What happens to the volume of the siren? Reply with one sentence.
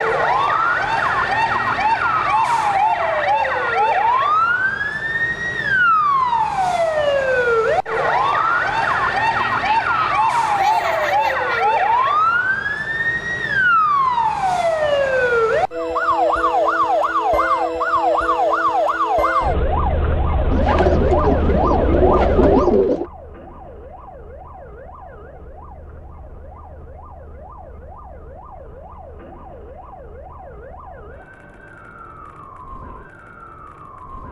The loudness of the siren goes down.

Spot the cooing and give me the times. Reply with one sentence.
You can hear the cooing from 20.5 to 23.1 s.